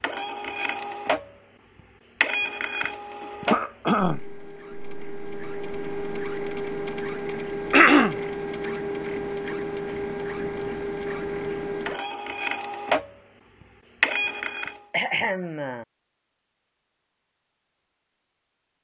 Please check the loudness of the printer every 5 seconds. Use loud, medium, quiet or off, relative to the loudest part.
loud, loud, loud, off.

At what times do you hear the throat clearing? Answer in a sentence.
You can hear the throat clearing from 3.5 to 4.2 s, from 7.7 to 8.2 s and from 14.9 to 15.8 s.